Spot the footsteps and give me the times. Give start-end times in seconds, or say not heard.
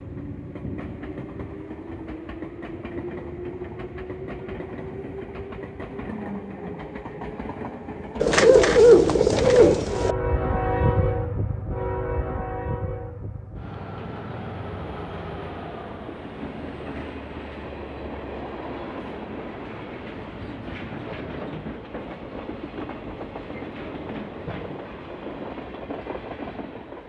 not heard.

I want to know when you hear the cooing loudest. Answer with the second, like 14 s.
9 s.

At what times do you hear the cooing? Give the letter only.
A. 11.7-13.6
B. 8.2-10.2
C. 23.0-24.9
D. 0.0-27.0
B.